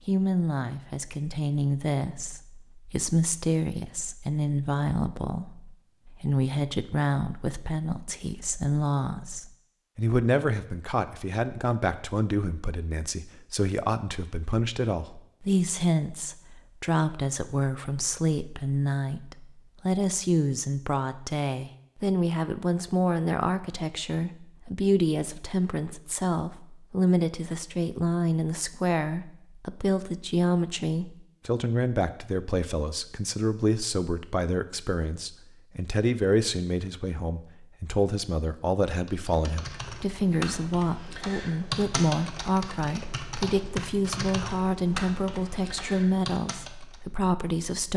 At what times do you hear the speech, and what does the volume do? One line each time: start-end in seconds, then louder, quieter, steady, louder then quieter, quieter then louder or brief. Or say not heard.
0.1-47.9 steady.